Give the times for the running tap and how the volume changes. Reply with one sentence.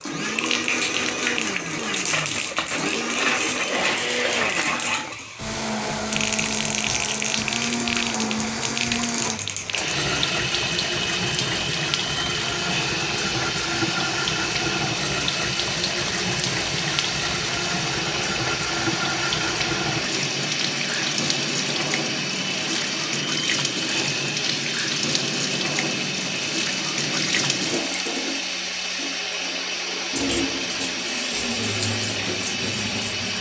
The running tap can be heard from 0.0 to 33.3 s, at a steady volume.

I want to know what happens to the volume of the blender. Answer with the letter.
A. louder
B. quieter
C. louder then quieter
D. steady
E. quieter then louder
D.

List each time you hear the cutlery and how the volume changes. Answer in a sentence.
You can't hear the cutlery here.